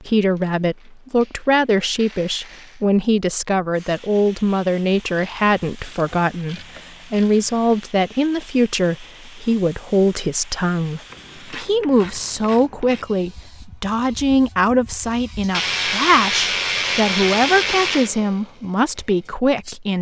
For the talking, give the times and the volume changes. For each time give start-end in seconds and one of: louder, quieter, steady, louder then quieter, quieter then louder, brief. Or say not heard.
0.0-19.9 steady.